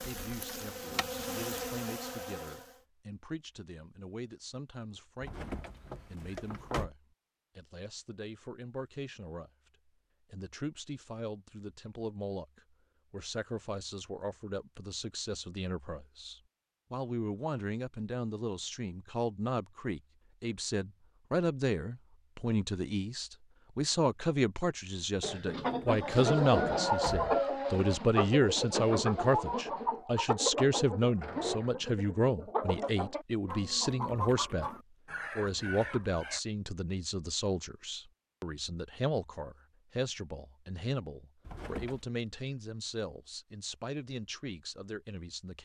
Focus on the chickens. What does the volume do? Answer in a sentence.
The volume of the chickens goes down.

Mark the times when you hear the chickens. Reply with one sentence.
The chickens can be heard from 25.2 to 36.4 s.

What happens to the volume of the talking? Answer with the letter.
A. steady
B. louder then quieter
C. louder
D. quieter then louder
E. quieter
B.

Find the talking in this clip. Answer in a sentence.
You can hear the talking from 0.0 to 9.5 s, from 10.3 to 34.7 s and from 35.4 to 45.5 s.